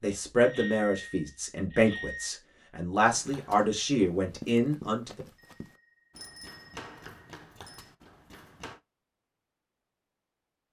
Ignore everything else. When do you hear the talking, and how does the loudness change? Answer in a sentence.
The talking can be heard from 0.0 to 5.2 s, at a steady volume.